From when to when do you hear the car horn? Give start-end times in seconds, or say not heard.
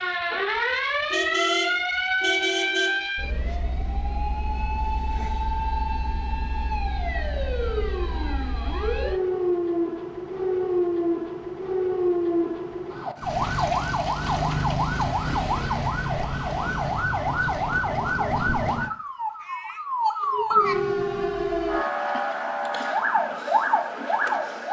1.1-3.0.